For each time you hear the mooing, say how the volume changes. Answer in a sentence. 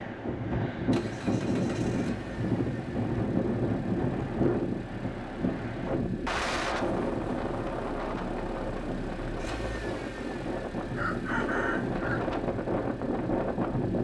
You can't hear the mooing here.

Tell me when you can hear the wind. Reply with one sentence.
The wind can be heard from 0.0 to 13.9 s.